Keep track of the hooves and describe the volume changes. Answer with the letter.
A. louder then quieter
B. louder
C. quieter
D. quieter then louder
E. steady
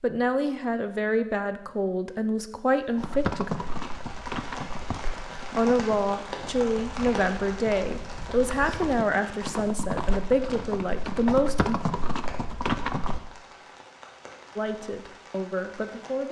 D.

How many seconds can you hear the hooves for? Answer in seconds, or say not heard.
10 s.